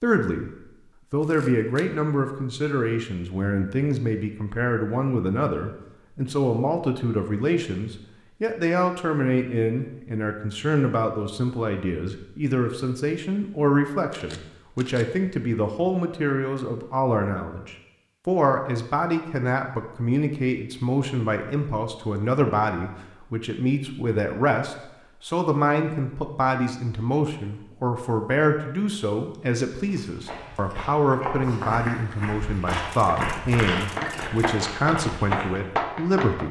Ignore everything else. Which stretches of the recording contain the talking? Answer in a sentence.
The talking can be heard from 0.0 to 36.4 s.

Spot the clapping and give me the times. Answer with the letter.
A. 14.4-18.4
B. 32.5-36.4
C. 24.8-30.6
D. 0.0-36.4
B.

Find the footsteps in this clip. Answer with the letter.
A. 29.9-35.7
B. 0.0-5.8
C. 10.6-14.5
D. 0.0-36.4
A.